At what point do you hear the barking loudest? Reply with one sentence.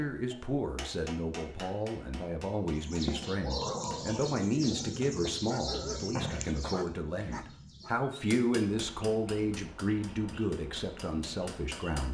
The volume of the barking peaks at 6 seconds.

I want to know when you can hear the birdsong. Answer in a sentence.
You can hear the birdsong from 2.7 to 11.9 s.